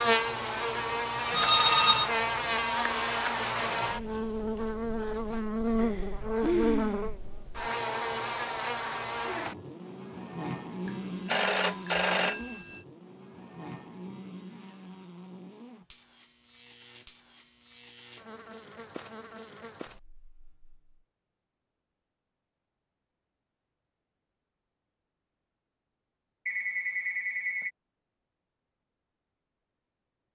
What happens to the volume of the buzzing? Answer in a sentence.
The loudness of the buzzing goes down.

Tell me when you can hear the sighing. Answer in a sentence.
The sighing can be heard from 5.8 to 7.1 s.